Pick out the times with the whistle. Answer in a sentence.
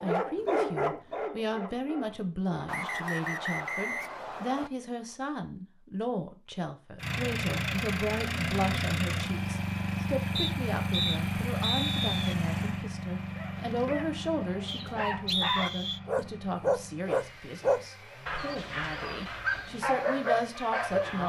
The whistle can be heard from 2.6 to 4.7 s, from 10.3 to 12.3 s and from 14.7 to 16.0 s.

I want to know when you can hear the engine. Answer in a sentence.
You can hear the engine from 7.0 to 21.2 s.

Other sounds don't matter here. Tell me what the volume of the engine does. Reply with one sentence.
The volume of the engine goes down.